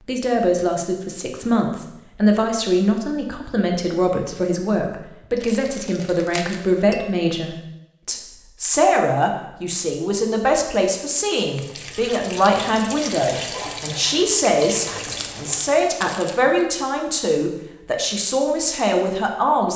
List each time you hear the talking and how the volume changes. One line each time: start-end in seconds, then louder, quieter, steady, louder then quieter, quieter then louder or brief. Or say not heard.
0.1-19.7 steady.